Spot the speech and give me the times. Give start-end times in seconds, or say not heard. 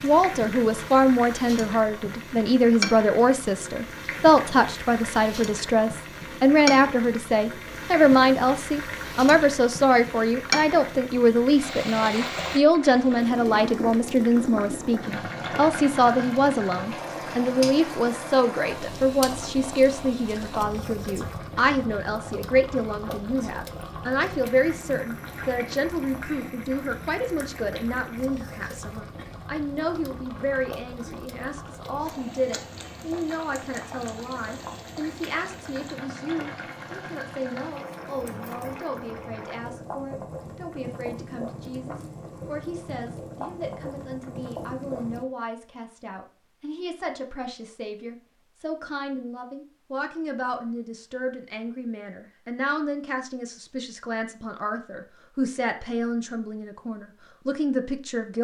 0.0-58.3.